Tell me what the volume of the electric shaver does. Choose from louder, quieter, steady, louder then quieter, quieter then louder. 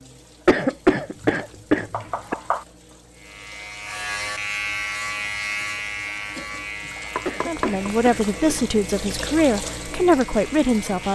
quieter.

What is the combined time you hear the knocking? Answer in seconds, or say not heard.
2 s.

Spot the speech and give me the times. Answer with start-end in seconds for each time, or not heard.
7.5-11.0.